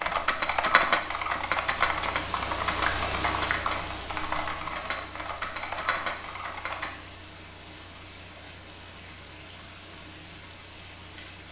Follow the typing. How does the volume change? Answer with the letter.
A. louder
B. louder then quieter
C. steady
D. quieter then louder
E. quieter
E.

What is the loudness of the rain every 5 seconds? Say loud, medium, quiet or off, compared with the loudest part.
loud, medium, medium.